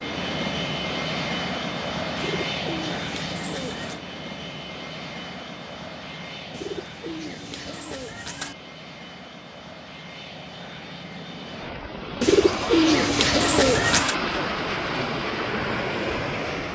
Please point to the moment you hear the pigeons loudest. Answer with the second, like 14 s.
13 s.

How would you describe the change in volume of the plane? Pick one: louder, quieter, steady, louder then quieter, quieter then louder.
quieter then louder.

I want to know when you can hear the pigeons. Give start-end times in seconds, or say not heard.
2.1-4.0, 6.5-8.6, 12.2-14.2.